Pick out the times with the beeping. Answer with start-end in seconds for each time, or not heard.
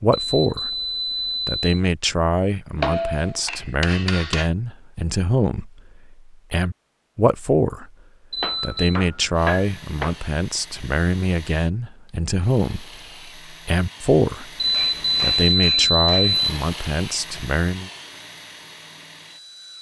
0.1-1.8, 8.3-9.0, 14.6-16.6.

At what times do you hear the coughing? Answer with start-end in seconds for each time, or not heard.
not heard.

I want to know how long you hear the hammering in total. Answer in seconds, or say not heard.
5 s.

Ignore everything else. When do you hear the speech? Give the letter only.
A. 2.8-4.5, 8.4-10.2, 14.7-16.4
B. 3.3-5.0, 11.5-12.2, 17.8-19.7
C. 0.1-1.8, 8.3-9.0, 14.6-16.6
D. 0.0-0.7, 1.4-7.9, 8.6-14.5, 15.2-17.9
D.